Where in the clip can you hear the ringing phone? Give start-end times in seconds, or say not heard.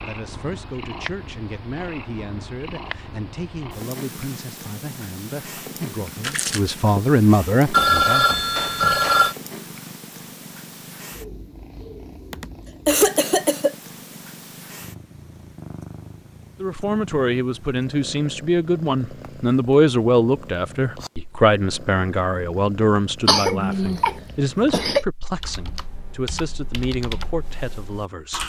7.7-9.3.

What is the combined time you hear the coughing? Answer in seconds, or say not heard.
4 s.